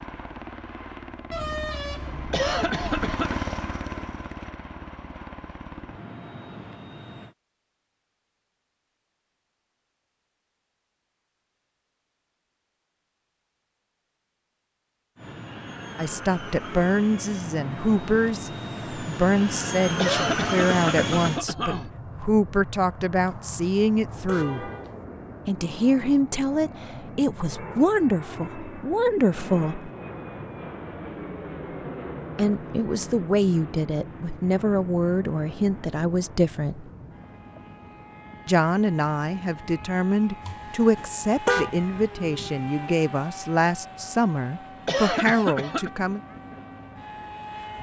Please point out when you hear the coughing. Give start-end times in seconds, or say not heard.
2.3-3.4, 19.9-21.9, 44.9-45.9.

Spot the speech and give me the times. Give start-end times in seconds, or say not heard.
15.9-24.7, 25.4-29.9, 32.4-36.9, 38.5-46.2.